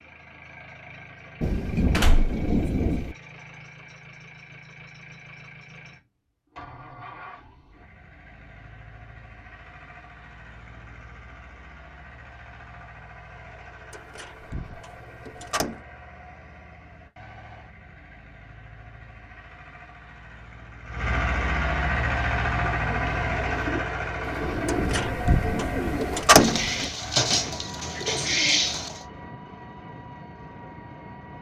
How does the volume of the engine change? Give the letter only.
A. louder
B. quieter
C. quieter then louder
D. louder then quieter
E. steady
D.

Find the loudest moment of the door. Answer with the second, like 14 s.
26 s.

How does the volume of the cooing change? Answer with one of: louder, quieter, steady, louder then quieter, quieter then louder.
louder.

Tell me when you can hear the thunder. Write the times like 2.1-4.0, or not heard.
1.4-3.1, 24.4-26.1.